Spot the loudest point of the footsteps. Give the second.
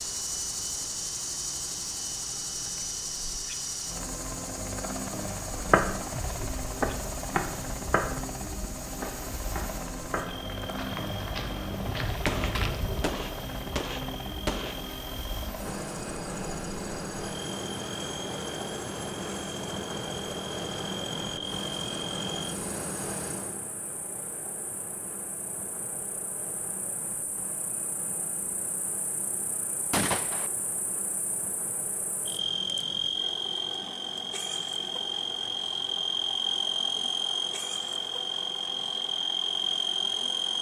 6 s.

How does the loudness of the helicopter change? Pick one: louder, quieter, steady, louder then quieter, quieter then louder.
quieter.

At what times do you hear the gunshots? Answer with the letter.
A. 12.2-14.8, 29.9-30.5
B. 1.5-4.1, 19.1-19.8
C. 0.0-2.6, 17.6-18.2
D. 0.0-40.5
A.